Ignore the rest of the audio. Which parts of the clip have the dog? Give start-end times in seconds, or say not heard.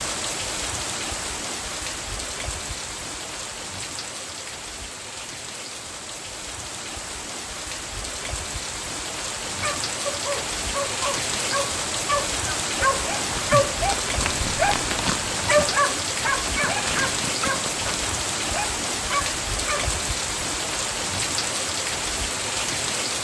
9.4-19.9.